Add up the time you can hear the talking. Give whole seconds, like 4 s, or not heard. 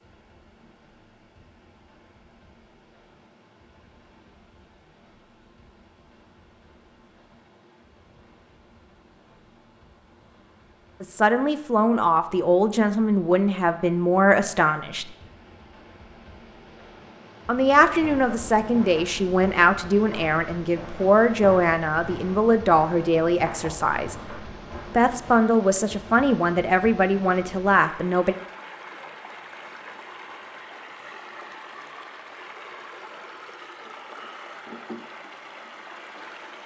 14 s.